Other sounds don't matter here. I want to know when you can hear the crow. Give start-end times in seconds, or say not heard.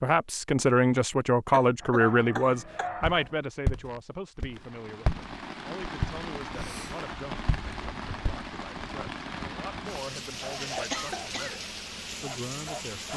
not heard.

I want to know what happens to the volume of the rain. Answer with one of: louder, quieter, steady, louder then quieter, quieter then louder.
steady.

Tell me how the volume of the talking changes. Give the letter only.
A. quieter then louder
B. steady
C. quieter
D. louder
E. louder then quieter
C.